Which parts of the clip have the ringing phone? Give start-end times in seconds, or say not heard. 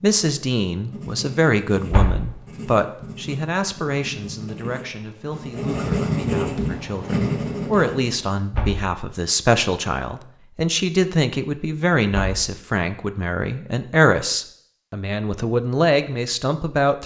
not heard.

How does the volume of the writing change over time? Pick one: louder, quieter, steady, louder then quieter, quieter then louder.
louder.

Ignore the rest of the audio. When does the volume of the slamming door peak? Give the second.
2 s.